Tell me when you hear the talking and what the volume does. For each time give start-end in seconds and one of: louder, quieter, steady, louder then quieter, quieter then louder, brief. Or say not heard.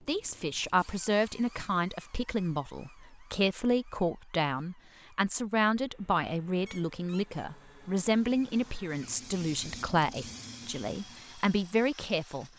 0.1-12.5 steady.